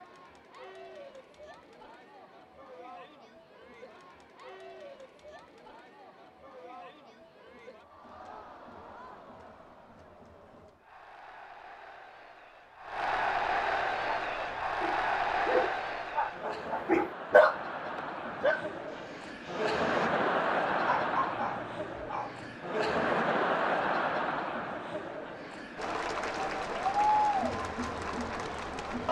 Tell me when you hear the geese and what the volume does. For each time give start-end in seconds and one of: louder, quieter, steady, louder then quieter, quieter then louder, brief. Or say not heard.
not heard.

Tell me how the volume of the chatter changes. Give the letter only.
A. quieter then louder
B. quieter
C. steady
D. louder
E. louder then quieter
D.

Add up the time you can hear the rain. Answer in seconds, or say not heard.
not heard.